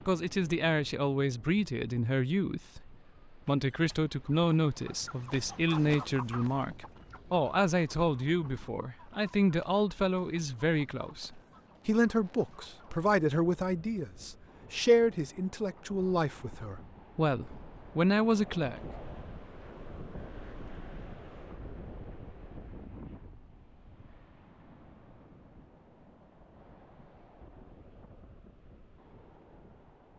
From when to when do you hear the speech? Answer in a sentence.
The speech can be heard from 0.1 to 18.8 s.